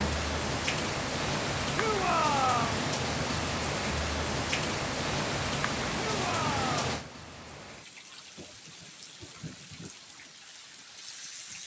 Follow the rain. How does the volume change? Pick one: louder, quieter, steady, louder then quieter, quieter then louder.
quieter.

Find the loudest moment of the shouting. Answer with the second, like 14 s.
2 s.